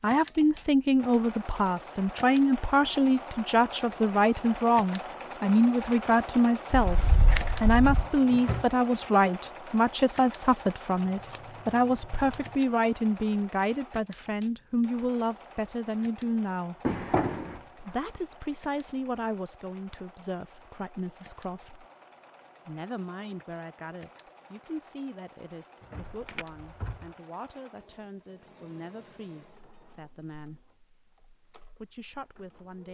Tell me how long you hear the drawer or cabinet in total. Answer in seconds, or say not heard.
4 s.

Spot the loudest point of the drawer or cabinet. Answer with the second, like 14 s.
17 s.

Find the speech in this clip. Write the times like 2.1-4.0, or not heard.
0.0-16.8, 17.8-21.9, 22.6-30.6, 31.8-32.8.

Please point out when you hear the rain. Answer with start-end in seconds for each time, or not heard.
not heard.